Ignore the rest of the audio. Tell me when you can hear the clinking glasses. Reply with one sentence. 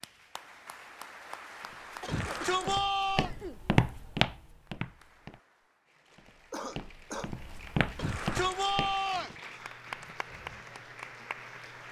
The clinking glasses can't be heard in this clip.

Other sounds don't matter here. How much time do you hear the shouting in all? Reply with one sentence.
You can hear the shouting for 3 seconds altogether.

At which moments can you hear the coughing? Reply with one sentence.
The coughing can be heard from 2.0 to 3.6 s and from 6.5 to 7.3 s.